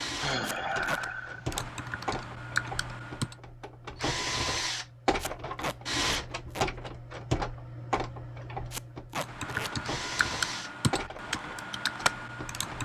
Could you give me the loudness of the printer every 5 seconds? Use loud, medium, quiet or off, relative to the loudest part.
loud, loud, medium.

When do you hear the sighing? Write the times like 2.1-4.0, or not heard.
0.2-1.6.